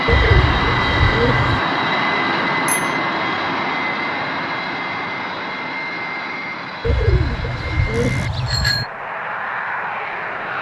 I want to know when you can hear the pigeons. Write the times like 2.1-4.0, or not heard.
0.1-1.6, 6.8-8.8.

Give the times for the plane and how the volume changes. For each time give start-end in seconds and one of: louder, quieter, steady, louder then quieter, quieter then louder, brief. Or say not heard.
0.0-10.5 quieter.